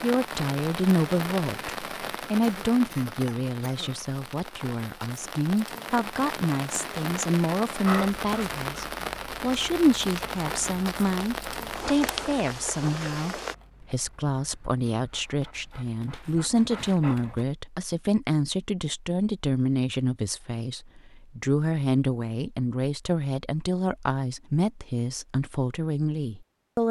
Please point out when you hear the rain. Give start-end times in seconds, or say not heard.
0.0-13.6.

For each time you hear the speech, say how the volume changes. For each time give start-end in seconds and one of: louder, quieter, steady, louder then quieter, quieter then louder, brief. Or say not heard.
0.0-26.8 steady.